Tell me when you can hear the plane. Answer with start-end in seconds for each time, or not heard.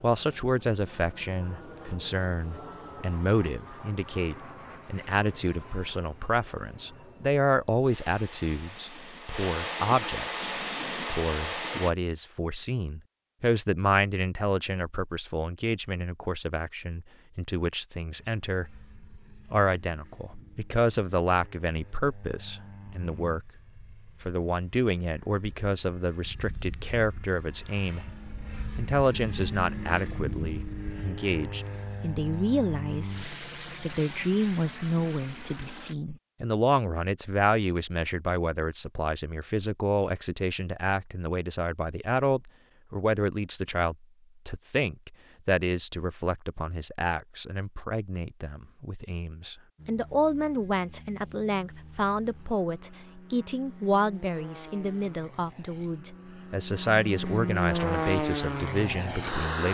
0.0-11.9, 18.1-36.0, 49.8-59.6.